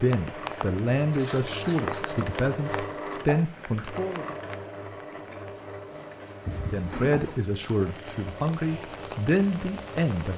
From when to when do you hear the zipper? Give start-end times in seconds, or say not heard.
6.5-7.4.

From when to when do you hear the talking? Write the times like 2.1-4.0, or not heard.
0.0-4.2, 6.7-10.3.